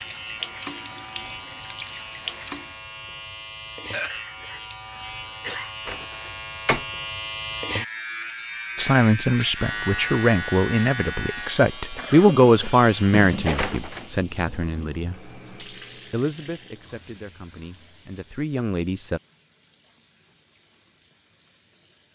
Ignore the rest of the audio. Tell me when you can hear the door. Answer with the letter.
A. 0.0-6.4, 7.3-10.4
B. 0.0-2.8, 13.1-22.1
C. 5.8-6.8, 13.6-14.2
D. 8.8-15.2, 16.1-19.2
C.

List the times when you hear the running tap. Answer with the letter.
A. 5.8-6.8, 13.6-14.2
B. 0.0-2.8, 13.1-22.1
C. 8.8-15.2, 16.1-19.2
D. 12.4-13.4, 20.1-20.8
B.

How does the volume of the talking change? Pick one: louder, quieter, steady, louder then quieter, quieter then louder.
quieter.